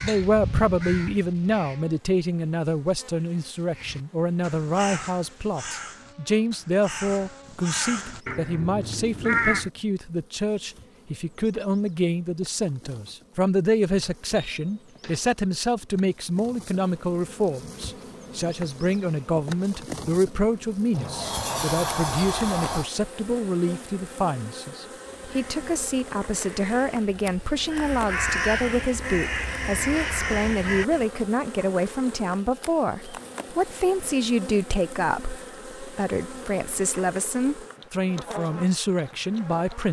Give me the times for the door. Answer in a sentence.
The door can be heard from 14.0 to 15.2 s and from 20.9 to 22.9 s.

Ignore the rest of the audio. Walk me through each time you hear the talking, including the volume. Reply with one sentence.
You can hear the talking from 0.0 to 39.8 s, at a steady volume.